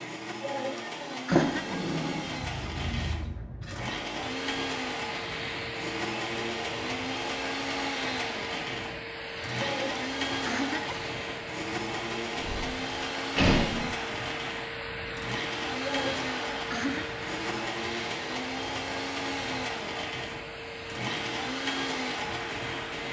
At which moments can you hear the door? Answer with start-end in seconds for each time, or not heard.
1.3-2.2, 12.3-13.9.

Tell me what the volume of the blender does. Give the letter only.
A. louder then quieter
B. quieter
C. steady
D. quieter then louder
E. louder
C.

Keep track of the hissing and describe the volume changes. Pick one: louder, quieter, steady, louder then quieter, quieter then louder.
steady.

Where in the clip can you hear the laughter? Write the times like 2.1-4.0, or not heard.
0.4-1.8, 9.6-11.0, 15.8-17.1.